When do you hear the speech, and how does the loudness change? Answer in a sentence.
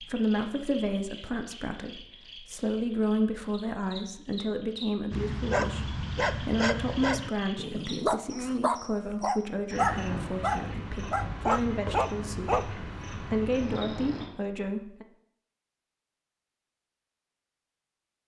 The speech can be heard from 0.0 to 15.1 s, at a steady volume.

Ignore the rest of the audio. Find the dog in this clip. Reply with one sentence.
The dog can be heard from 5.1 to 12.7 s.